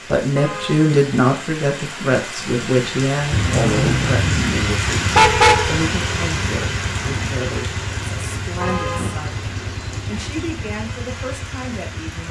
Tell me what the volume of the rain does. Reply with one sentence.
The volume of the rain goes up, then down.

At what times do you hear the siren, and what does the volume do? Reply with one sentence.
The siren can't be heard in this clip.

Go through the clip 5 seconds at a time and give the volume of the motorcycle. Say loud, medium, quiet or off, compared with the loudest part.
loud, medium, quiet.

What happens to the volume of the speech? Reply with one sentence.
The volume of the speech goes down.